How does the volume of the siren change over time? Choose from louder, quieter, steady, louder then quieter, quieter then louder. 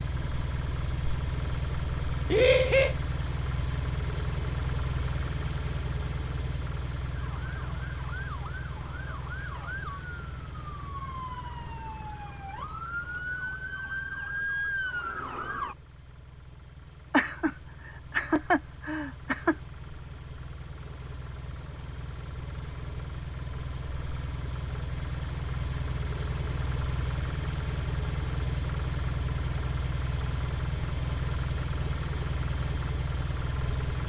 louder.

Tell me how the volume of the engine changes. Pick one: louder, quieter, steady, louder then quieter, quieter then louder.
quieter then louder.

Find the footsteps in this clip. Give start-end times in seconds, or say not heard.
not heard.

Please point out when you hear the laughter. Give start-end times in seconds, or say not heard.
2.3-3.0, 17.1-19.6.